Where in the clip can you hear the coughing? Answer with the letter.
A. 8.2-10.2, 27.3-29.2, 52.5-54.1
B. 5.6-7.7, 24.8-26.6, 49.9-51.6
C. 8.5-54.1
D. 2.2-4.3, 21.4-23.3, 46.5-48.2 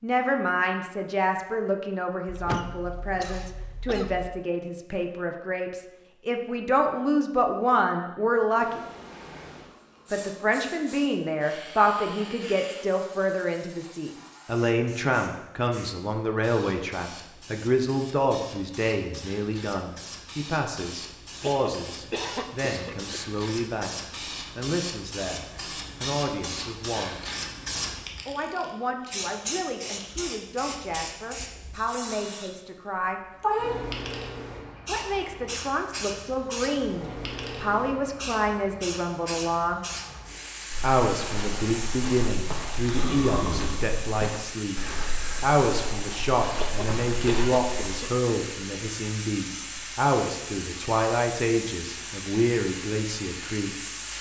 D.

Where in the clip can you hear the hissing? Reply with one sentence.
The hissing can be heard from 8.5 to 54.1 s.